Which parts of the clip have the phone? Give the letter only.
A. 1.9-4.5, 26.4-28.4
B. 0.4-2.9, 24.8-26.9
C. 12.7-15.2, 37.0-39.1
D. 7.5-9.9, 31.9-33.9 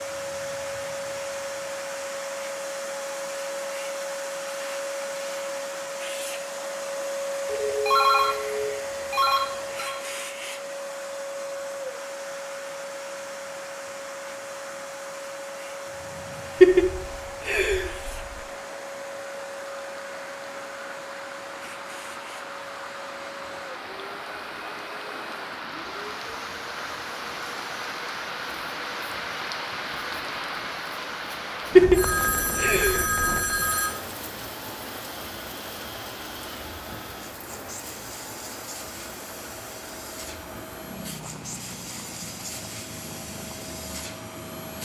D.